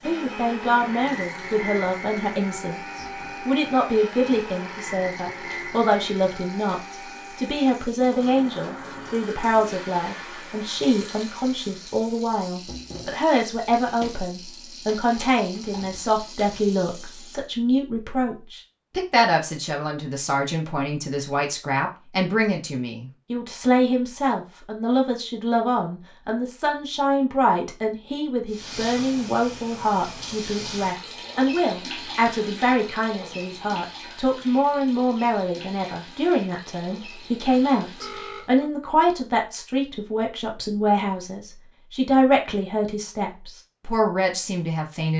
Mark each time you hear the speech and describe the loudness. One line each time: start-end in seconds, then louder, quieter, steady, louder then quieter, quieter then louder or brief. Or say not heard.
0.1-45.1 steady.